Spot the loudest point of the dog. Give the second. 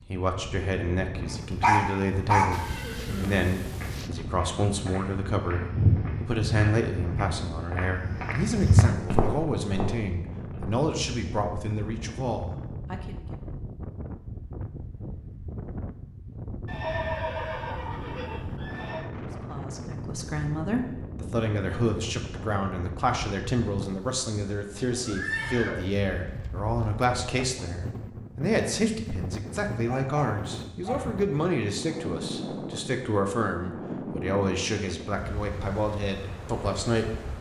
2 s.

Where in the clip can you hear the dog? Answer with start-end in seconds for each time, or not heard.
1.6-2.5, 29.9-31.2.